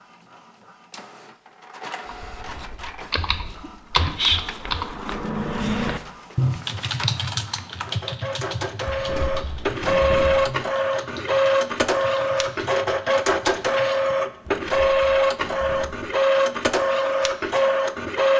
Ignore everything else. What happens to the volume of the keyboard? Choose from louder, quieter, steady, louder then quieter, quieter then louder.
quieter.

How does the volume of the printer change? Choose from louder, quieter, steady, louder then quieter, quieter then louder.
louder.